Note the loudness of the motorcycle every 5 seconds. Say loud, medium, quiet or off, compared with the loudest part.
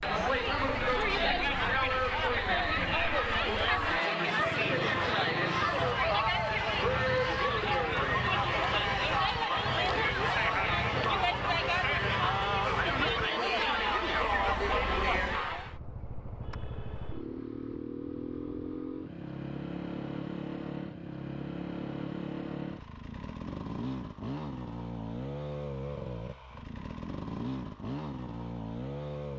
medium, loud, loud, loud, loud, loud.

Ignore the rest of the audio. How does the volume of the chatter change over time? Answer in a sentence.
The loudness of the chatter stays about the same.